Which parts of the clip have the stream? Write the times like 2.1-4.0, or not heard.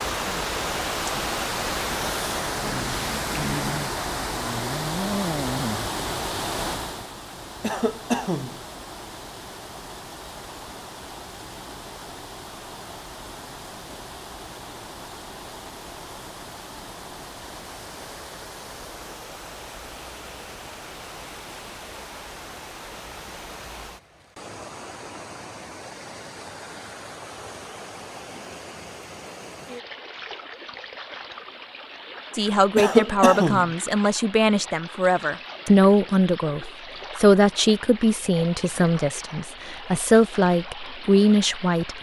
0.0-41.9.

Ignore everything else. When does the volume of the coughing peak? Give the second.
33 s.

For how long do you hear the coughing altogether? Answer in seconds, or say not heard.
2 s.